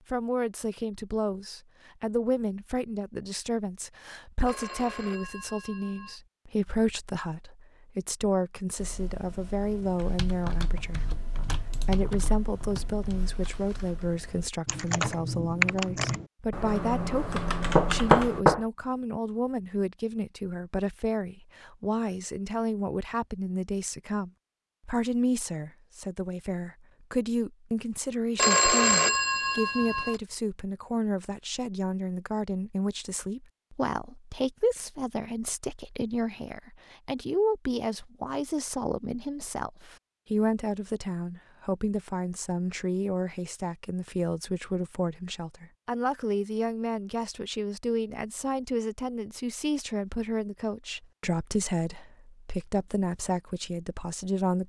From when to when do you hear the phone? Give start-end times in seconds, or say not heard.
4.5-6.2, 28.4-30.2.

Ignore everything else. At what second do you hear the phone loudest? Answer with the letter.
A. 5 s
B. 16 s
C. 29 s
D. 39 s
C.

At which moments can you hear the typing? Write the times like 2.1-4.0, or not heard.
8.8-18.4.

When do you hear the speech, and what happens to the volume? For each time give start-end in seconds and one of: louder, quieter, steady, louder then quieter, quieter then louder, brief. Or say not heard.
0.1-54.6 steady.